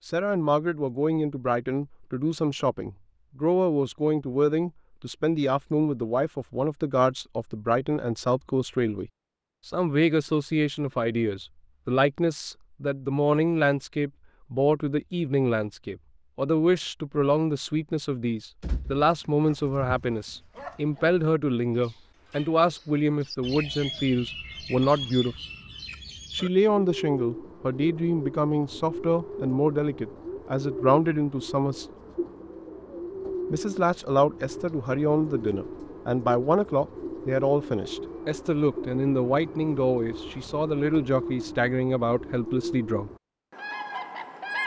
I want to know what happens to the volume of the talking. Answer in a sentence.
The volume of the talking stays about the same.